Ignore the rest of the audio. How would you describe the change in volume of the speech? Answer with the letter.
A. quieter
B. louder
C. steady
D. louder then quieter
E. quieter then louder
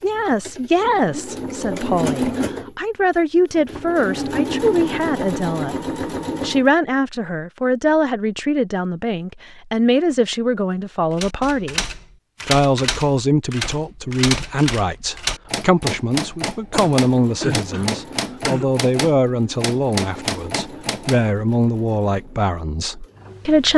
C.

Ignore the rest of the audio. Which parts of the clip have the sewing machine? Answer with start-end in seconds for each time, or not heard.
0.0-6.7, 16.9-23.7.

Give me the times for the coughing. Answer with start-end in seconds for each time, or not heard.
16.7-18.7.